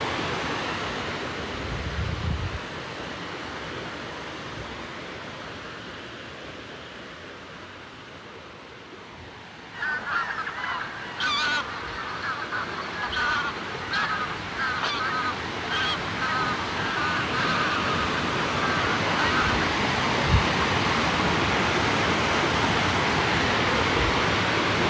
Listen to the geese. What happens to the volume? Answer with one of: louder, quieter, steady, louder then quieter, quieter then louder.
steady.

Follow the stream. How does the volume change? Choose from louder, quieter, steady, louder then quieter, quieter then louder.
quieter then louder.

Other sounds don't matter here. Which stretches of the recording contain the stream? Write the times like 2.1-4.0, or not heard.
0.0-24.8.